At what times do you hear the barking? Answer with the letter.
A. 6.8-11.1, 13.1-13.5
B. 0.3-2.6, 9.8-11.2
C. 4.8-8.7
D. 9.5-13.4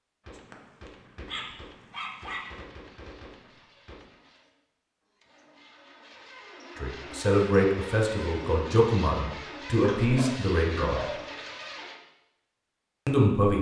B.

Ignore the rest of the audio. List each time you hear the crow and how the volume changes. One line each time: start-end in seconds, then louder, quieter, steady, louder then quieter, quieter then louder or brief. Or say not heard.
not heard.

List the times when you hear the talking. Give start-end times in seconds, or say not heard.
6.8-11.1, 13.1-13.5.